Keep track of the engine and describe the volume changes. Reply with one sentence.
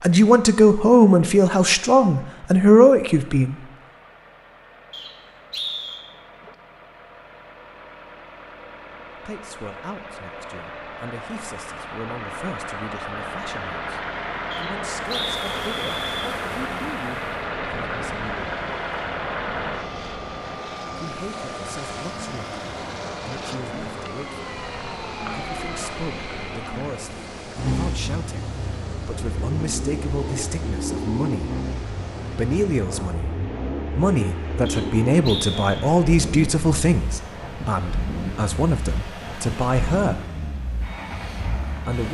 The loudness of the engine goes up.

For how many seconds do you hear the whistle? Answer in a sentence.
You can hear the whistle for 4 seconds altogether.